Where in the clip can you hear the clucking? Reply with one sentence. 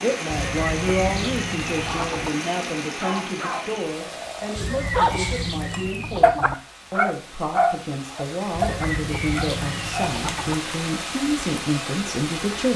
You can hear the clucking from 0.3 to 2.3 s, from 4.5 to 6.5 s and from 8.6 to 10.6 s.